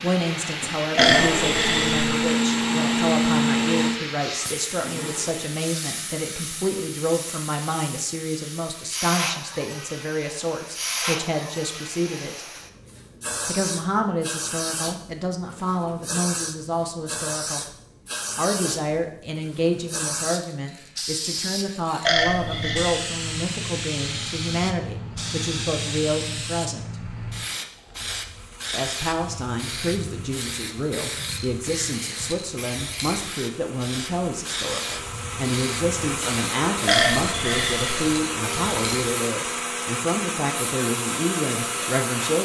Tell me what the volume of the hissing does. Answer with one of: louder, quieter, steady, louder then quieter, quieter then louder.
steady.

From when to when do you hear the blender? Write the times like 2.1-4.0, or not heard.
0.0-5.6, 28.1-42.4.